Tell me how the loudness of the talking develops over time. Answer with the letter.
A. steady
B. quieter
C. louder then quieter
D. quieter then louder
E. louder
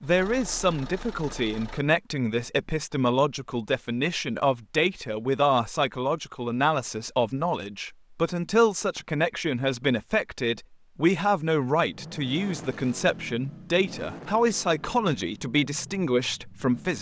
A.